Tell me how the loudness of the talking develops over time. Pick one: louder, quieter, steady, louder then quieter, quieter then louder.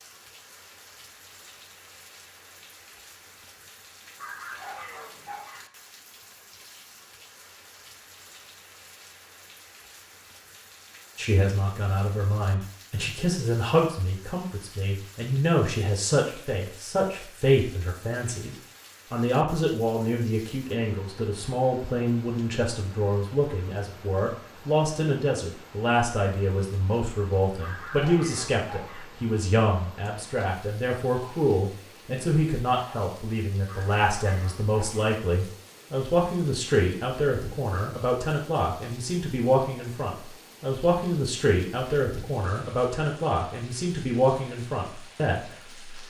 steady.